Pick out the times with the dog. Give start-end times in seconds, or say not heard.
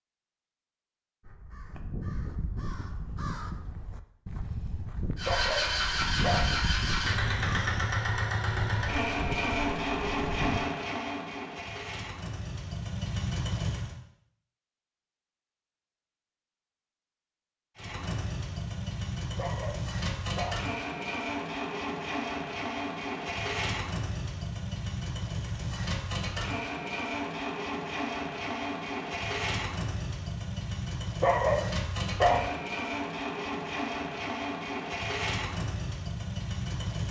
5.2-6.6, 19.4-20.7, 31.2-32.5.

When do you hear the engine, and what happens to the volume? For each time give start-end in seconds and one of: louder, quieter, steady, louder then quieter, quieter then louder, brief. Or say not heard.
5.2-13.9 quieter
17.8-37.0 steady.